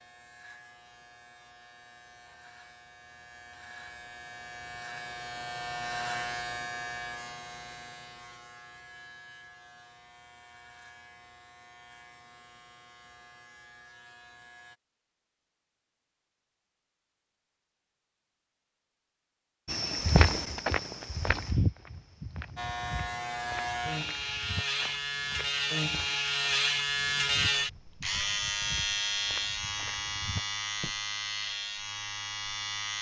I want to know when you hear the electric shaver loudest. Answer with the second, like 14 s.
27 s.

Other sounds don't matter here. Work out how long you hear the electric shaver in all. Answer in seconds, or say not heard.
25 s.